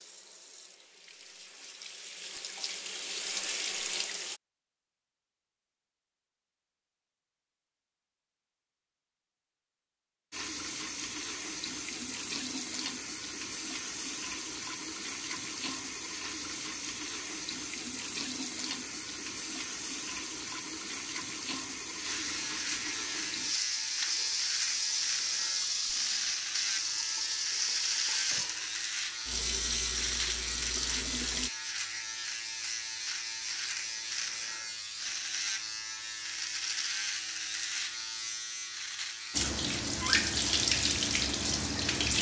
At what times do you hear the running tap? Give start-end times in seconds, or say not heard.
0.0-4.4, 10.3-31.5, 39.3-42.1.